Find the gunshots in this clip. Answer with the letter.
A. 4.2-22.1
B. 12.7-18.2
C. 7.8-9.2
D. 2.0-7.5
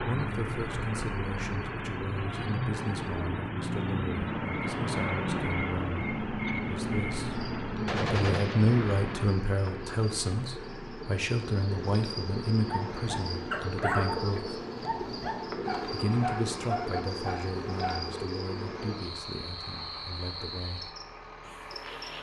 C.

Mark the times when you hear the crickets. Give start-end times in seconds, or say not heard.
4.2-22.1.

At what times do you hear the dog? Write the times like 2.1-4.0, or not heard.
12.7-18.2.